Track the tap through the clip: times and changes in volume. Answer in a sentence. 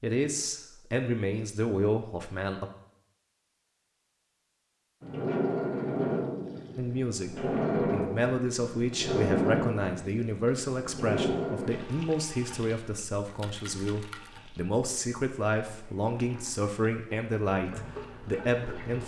You can hear the tap from 5.0 to 19.0 s, getting quieter then louder.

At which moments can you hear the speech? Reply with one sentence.
You can hear the speech from 0.0 to 2.7 s and from 6.8 to 19.0 s.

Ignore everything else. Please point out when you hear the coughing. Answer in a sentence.
You can't hear the coughing here.